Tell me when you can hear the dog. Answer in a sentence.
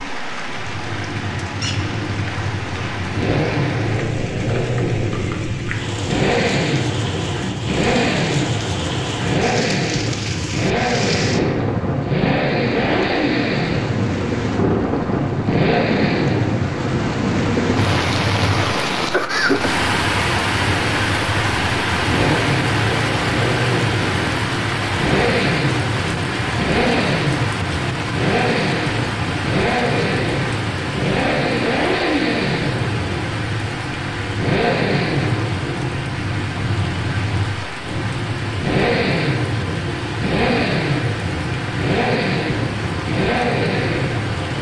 The dog can't be heard in this clip.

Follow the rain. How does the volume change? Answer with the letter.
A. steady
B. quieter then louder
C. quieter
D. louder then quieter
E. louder
D.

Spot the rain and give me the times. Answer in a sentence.
The rain can be heard from 0.0 to 44.5 s.